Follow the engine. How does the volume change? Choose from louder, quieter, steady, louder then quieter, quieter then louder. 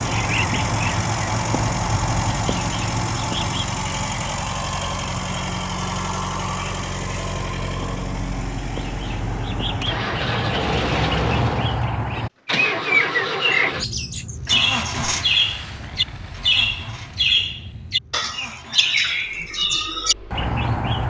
quieter.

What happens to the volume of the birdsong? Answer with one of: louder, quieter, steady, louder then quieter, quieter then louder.
quieter then louder.